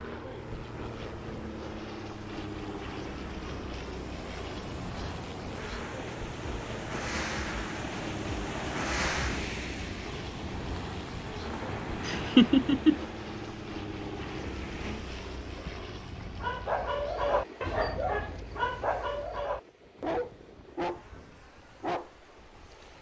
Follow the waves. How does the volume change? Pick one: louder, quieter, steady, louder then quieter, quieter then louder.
louder then quieter.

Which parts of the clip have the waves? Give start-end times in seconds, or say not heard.
0.1-22.9.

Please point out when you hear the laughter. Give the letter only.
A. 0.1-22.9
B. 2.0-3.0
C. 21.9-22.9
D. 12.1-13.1
D.